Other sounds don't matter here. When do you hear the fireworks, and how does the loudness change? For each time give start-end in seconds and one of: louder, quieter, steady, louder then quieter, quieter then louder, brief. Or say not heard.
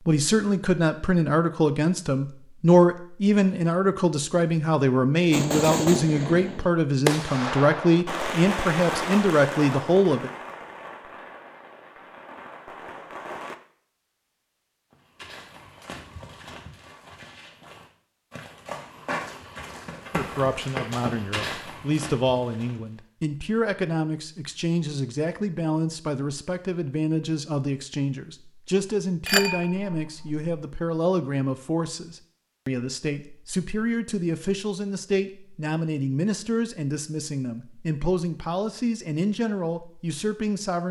5.3-13.6 quieter.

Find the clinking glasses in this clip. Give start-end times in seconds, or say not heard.
29.2-30.4.